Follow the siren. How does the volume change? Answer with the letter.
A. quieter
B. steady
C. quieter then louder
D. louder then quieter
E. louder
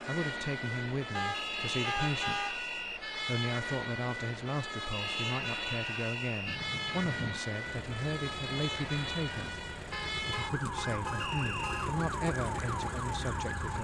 B.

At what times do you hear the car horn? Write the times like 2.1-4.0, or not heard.
1.1-2.6, 6.5-7.4, 9.9-11.9.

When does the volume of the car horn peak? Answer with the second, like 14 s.
2 s.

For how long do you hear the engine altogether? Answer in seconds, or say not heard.
6 s.